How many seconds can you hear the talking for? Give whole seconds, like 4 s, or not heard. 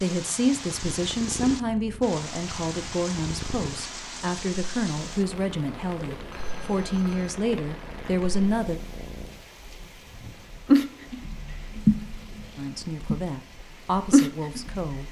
11 s.